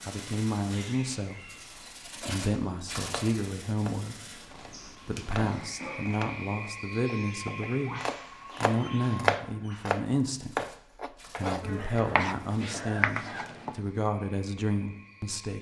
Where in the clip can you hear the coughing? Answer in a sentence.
The coughing can be heard from 1.7 to 2.5 s, from 5.3 to 6.0 s and from 11.6 to 13.6 s.